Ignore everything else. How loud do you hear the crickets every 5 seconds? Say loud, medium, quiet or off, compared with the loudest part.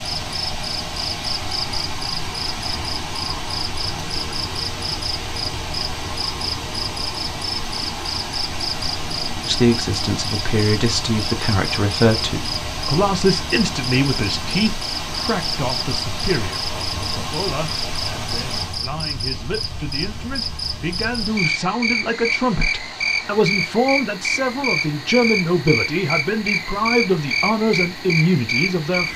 medium, medium, medium, medium, loud, loud.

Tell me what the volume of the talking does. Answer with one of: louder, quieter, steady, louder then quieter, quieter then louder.
quieter then louder.